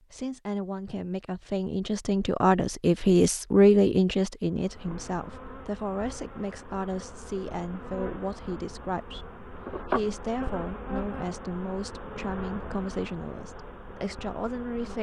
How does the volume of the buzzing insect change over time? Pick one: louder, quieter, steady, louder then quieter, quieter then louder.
louder then quieter.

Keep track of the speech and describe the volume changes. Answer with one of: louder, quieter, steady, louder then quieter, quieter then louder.
quieter.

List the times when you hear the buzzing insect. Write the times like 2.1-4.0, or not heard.
4.5-14.9.